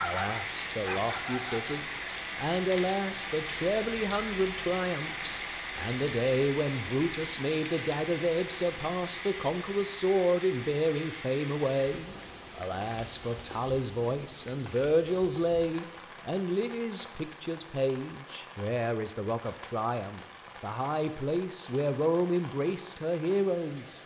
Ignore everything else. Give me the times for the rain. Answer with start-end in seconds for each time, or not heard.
0.0-24.0.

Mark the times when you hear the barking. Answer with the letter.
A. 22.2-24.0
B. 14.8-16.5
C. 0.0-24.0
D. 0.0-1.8
D.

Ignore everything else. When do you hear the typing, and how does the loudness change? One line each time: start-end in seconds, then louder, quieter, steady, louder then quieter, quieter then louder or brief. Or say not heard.
not heard.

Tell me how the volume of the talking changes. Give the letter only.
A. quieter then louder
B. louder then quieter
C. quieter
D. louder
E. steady
E.